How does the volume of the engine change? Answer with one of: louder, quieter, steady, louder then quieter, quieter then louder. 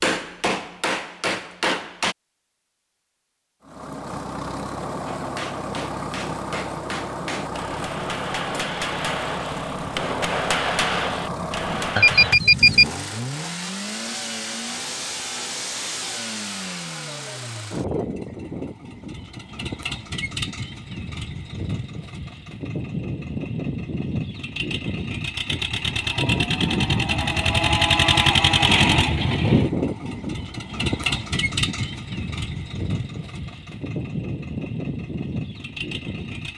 louder then quieter.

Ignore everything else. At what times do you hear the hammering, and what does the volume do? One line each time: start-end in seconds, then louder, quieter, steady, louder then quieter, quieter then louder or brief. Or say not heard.
0.0-2.1 brief
5.0-12.3 louder.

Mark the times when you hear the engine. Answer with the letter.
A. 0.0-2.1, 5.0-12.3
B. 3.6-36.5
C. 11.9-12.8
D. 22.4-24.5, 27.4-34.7
B.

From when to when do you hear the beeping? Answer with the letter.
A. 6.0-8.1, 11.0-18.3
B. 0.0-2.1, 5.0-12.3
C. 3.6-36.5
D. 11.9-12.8
D.